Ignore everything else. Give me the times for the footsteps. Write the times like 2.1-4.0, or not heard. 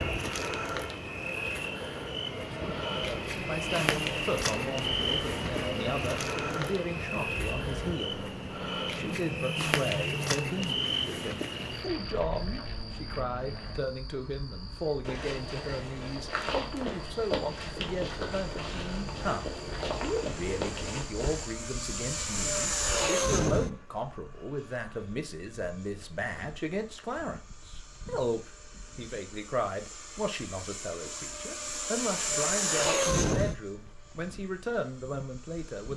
15.0-21.5.